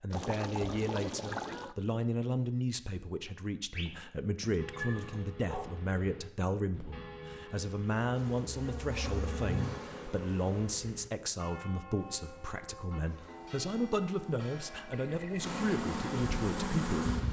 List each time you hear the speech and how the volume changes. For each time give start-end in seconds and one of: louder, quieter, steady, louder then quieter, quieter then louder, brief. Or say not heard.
0.0-17.1 steady.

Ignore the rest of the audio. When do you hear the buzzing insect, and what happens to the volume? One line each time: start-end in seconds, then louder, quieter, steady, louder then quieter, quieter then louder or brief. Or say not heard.
8.1-10.8 brief
12.9-17.2 louder.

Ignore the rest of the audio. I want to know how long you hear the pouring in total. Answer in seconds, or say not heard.
2 s.